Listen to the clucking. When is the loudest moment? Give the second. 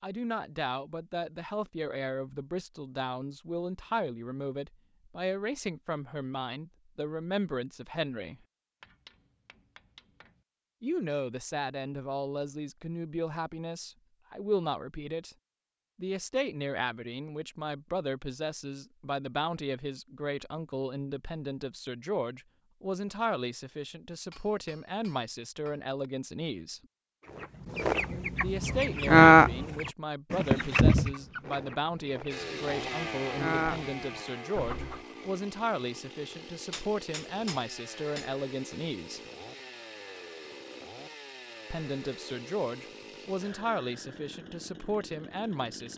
29 s.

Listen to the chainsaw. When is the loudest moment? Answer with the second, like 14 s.
33 s.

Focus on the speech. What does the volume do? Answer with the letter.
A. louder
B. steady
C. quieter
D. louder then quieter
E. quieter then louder
B.